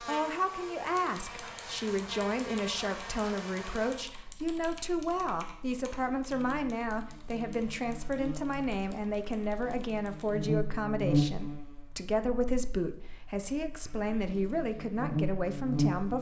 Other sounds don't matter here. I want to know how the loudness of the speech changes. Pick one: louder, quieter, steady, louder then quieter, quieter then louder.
steady.